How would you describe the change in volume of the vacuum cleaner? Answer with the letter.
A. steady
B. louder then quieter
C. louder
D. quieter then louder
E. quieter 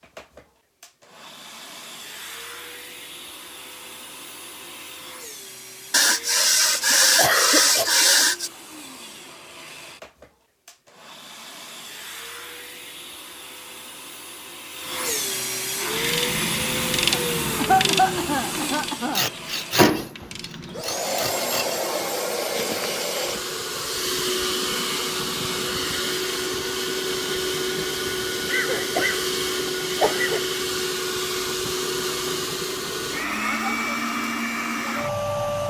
C.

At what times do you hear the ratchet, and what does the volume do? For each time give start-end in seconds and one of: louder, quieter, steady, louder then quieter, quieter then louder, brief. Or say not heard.
15.8-21.0 quieter.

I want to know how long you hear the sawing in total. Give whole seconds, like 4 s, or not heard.
5 s.